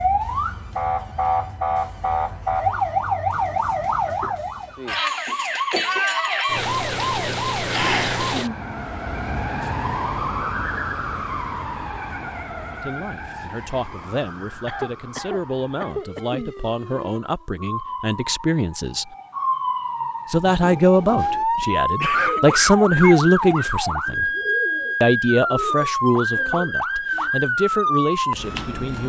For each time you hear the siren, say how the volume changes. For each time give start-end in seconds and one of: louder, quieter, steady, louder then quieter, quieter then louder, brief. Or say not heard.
0.0-29.0 quieter then louder.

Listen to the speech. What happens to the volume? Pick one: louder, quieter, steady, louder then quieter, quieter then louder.
louder then quieter.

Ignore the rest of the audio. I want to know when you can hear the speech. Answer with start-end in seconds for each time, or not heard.
12.8-19.1, 20.2-24.3, 25.0-29.0.